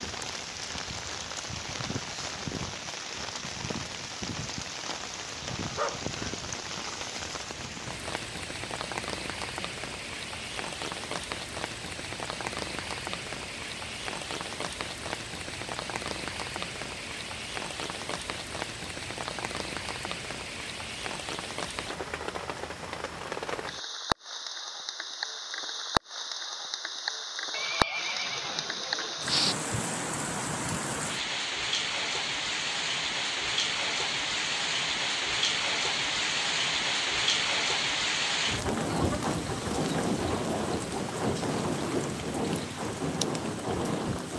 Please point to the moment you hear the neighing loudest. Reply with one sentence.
The volume of the neighing peaks at 29 seconds.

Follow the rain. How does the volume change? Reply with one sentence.
The volume of the rain goes up.